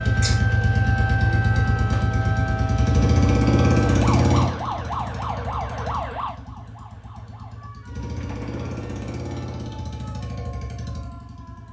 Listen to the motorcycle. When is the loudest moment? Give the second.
4 s.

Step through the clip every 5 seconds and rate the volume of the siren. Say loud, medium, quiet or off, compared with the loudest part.
loud, medium, quiet.